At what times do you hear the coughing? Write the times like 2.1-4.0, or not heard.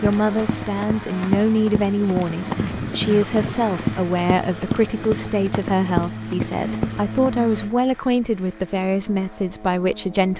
2.5-3.5.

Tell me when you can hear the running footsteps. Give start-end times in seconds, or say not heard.
0.0-7.3.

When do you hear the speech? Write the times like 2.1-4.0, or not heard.
0.0-10.3.